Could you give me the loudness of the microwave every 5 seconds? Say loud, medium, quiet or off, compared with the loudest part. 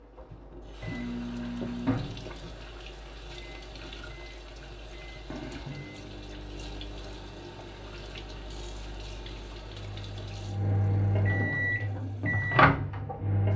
medium, quiet, loud.